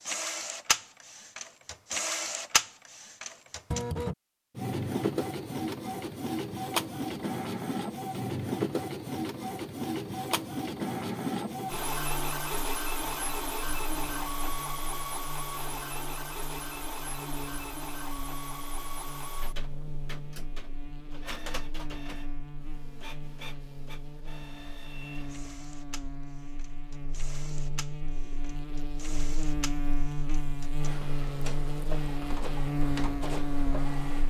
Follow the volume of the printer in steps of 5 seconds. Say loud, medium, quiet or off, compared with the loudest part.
loud, loud, loud, medium, quiet, quiet, medium.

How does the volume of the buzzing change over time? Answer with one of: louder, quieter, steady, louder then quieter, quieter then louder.
louder.